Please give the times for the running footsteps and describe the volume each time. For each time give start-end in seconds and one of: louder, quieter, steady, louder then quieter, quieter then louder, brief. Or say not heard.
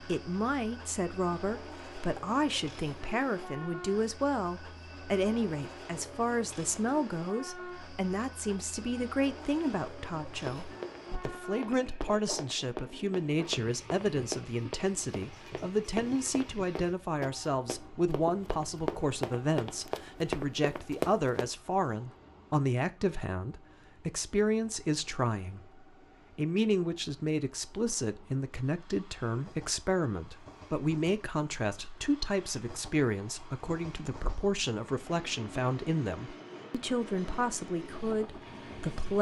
10.4-21.5 louder.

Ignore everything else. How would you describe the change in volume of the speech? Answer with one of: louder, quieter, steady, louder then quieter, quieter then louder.
steady.